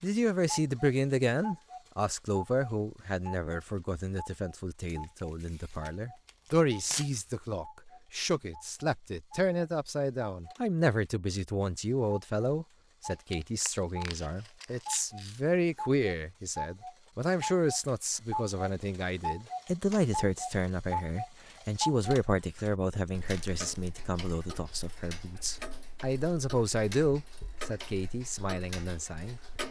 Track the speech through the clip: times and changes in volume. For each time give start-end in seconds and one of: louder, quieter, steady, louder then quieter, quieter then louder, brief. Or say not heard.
0.0-29.4 steady.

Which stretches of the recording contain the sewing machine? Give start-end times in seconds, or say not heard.
not heard.